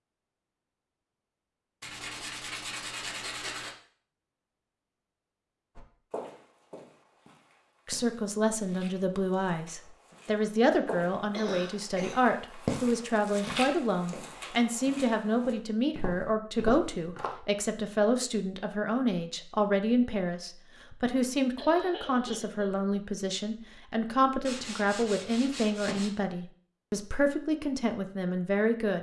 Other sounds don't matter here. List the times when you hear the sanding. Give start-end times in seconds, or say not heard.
1.8-3.8, 24.4-26.1.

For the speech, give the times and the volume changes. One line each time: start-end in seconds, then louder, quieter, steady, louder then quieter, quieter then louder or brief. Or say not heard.
7.8-28.9 steady.